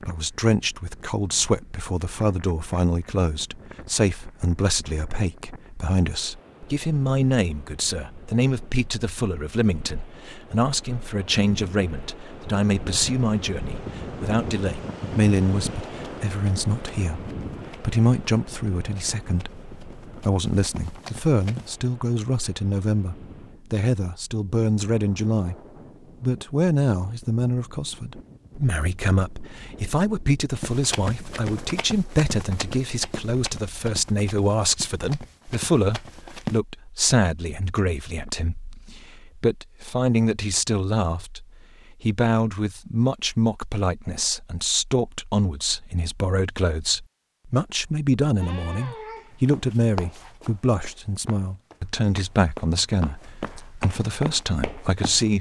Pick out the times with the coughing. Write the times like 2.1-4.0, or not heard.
48.4-49.8.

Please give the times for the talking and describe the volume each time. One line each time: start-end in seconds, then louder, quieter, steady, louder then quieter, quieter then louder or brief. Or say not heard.
0.0-25.6 steady
26.2-55.3 steady.